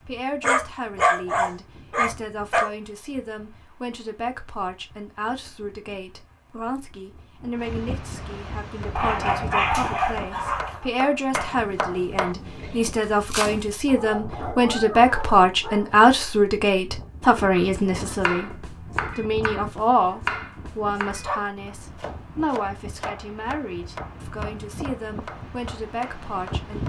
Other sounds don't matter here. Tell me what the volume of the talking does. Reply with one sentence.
The loudness of the talking goes up, then down.